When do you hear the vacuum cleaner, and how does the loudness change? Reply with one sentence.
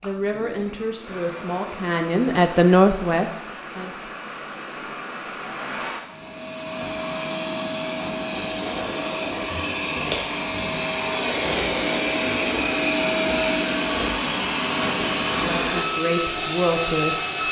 The vacuum cleaner can be heard from 0.0 to 17.4 s, getting louder.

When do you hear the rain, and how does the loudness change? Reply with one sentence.
You can't hear the rain here.